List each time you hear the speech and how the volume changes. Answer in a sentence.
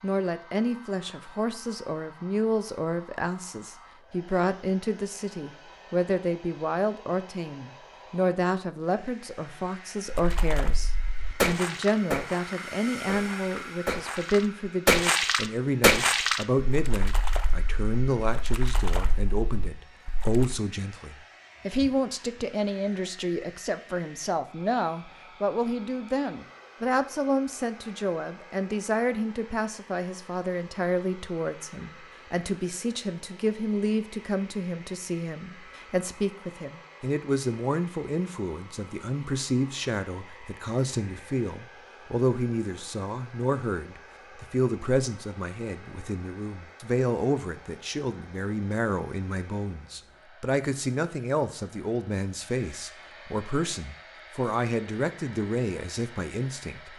You can hear the speech from 0.0 to 56.9 s, at a steady volume.